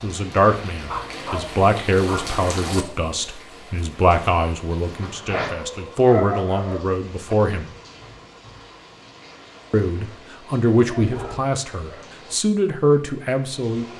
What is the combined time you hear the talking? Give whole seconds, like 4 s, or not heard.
12 s.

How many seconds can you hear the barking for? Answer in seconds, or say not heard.
5 s.